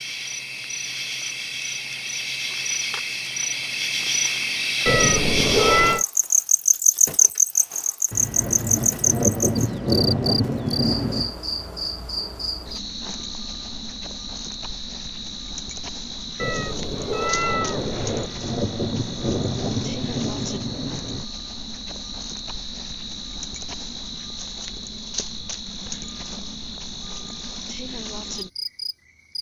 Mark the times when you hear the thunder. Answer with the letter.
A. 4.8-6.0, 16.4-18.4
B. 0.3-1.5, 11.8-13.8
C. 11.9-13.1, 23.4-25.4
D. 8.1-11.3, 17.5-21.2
D.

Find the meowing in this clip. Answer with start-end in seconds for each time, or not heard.
4.8-6.0, 16.4-18.4.